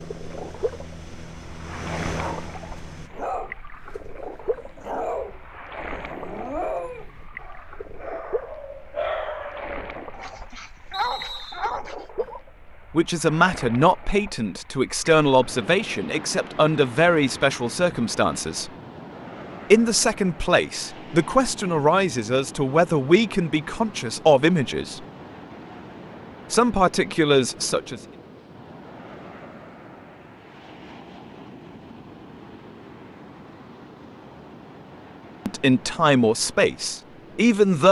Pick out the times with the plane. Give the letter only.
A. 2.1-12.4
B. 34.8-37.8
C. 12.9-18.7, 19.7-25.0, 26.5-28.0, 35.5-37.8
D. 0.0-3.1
D.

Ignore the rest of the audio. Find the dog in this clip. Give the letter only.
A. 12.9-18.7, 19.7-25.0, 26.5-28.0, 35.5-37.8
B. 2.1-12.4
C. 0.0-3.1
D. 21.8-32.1
B.